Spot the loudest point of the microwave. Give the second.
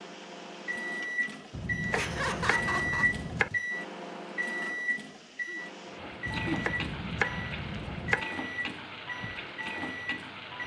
3 s.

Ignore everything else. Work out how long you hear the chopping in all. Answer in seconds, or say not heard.
4 s.